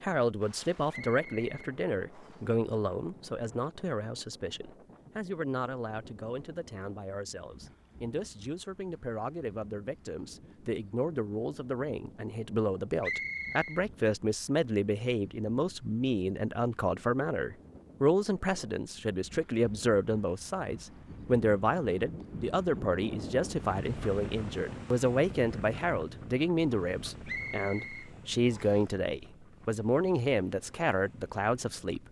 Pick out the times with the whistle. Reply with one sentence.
The whistle can be heard from 0.9 to 2.5 s, from 13.0 to 13.8 s and from 27.2 to 28.9 s.